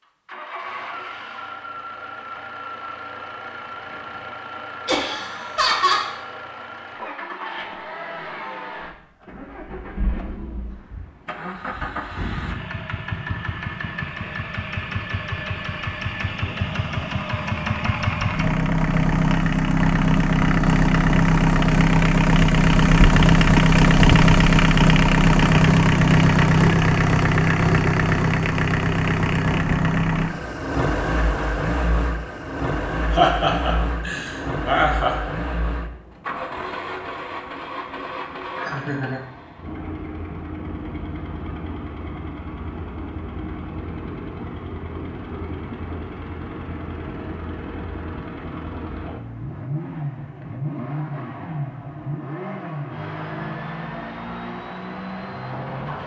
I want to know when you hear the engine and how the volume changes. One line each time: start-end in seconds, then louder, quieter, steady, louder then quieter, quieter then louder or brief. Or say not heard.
0.0-56.0 louder then quieter.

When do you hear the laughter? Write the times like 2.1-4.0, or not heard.
4.8-6.0, 33.1-35.1, 38.5-39.2.